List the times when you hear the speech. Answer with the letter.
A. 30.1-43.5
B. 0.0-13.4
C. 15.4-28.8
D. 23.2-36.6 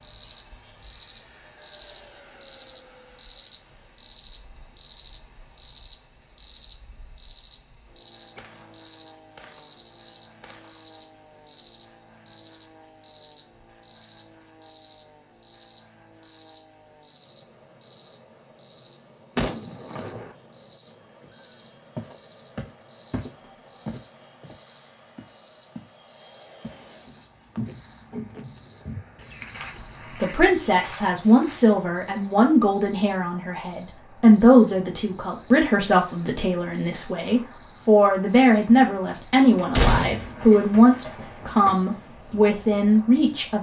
A.